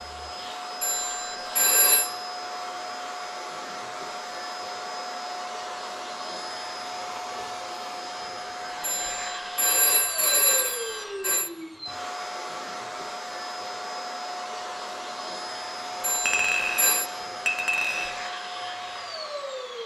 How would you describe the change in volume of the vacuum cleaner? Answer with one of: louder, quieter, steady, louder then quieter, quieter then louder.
steady.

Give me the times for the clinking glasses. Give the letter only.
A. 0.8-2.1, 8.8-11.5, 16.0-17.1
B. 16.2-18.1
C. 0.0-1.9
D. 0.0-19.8
B.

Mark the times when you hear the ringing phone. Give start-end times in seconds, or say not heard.
0.8-2.1, 8.8-11.5, 16.0-17.1.